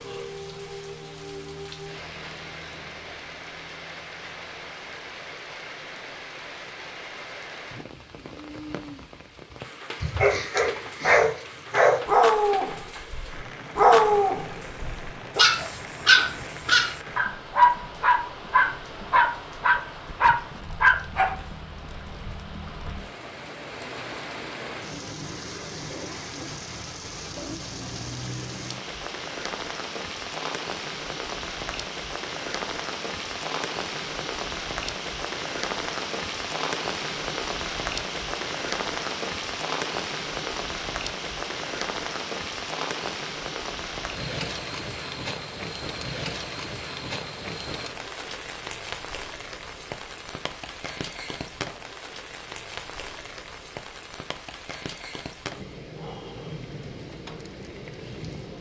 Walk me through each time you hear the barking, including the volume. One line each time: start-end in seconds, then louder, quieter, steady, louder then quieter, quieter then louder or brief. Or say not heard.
10.0-21.4 steady.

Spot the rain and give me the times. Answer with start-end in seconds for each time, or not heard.
0.0-58.5.